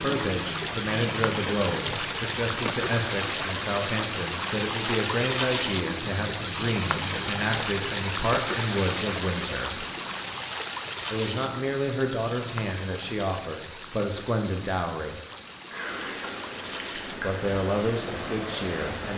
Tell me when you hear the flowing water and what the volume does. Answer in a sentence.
You can hear the flowing water from 0.0 to 19.1 s, getting quieter.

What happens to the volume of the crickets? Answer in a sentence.
The loudness of the crickets goes down.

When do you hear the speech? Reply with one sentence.
You can hear the speech from 0.0 to 9.8 s, from 11.1 to 15.2 s and from 17.1 to 19.1 s.